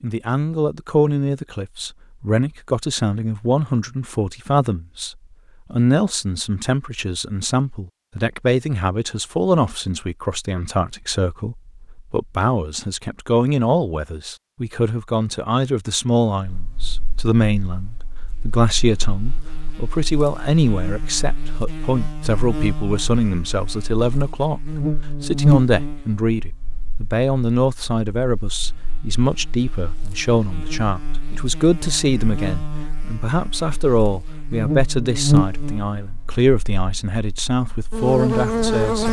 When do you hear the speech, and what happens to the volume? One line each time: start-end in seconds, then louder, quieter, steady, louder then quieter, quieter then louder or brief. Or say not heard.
0.0-24.6 steady
25.2-39.0 steady.